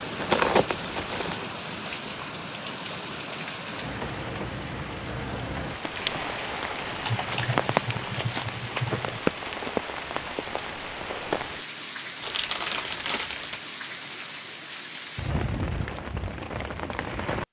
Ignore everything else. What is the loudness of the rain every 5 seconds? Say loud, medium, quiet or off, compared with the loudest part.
medium, loud, medium, loud.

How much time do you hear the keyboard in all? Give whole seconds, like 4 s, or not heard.
2 s.